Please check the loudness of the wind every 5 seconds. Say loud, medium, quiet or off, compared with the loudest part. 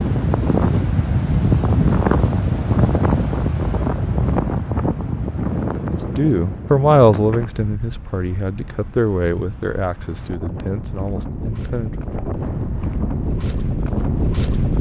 loud, medium, medium.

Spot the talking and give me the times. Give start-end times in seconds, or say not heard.
5.9-12.1.